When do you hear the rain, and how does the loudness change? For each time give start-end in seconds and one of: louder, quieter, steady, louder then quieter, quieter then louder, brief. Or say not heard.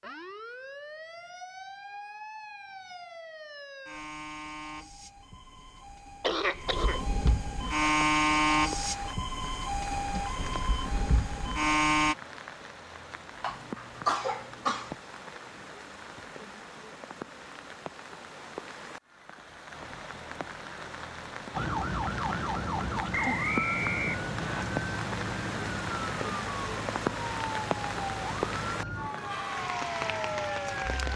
7.6-31.1 louder.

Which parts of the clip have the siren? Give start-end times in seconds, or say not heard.
0.0-12.2, 21.5-31.1.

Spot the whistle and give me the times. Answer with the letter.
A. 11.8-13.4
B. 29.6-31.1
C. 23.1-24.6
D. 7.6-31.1
C.